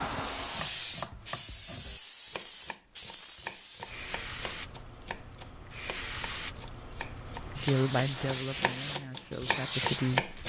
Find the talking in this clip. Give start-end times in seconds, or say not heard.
7.5-10.3.